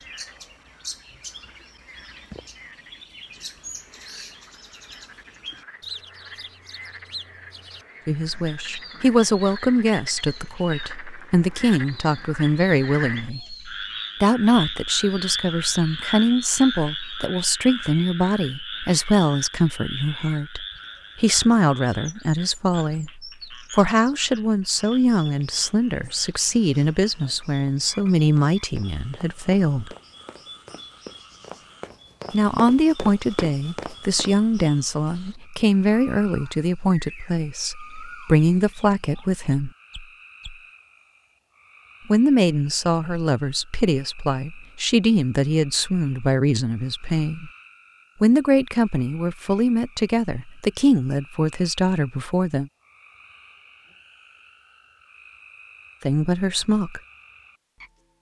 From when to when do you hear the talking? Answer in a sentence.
You can hear the talking from 8.1 to 13.4 s, from 14.2 to 29.9 s, from 32.3 to 39.7 s, from 42.0 to 47.5 s, from 48.2 to 52.7 s and from 56.0 to 57.0 s.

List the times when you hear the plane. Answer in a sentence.
You can't hear the plane here.